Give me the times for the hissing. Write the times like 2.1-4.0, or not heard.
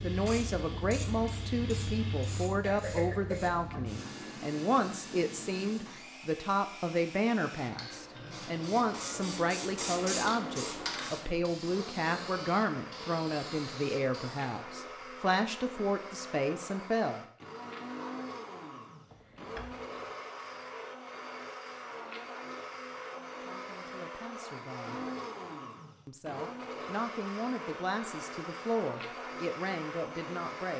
0.0-6.1, 7.5-14.7.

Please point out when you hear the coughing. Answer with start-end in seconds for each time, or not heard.
2.6-3.6, 19.1-20.0.